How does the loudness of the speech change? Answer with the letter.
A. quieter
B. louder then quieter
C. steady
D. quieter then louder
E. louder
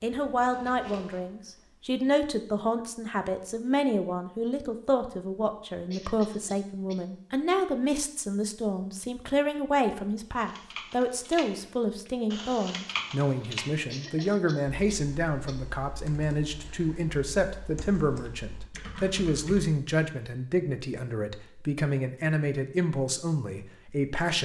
C.